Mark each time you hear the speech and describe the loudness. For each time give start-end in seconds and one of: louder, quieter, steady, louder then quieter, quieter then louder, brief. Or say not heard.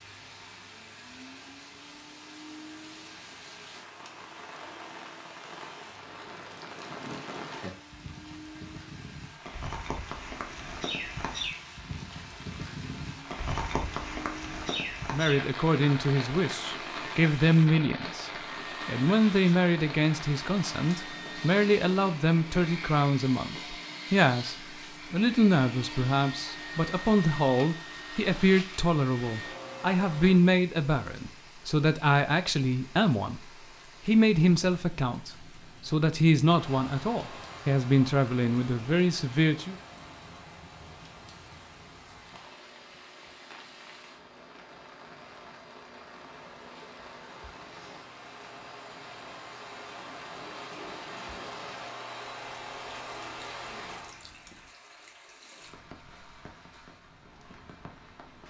15.1-39.8 steady.